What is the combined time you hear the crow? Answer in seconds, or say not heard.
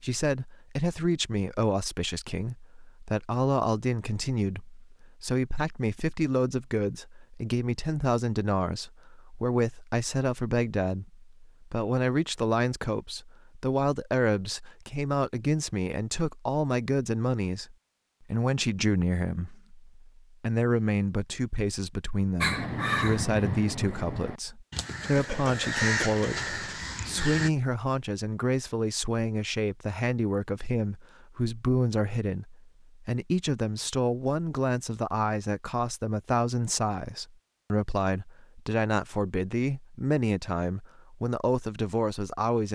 5 s.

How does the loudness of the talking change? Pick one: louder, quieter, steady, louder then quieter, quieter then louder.
steady.